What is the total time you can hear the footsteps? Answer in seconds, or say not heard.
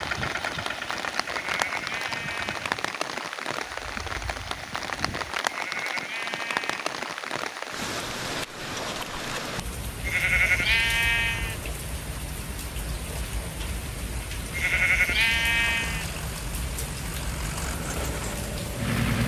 not heard.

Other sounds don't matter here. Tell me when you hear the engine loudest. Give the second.
19 s.